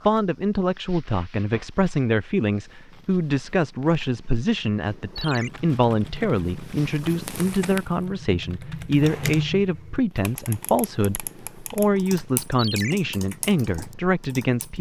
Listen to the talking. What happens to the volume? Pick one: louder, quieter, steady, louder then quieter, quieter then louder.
steady.